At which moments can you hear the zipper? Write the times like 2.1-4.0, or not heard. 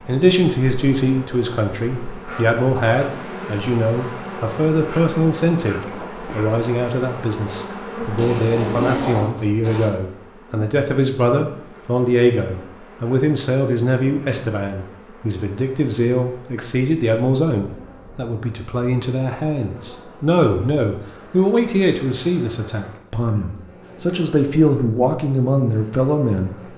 8.2-9.9.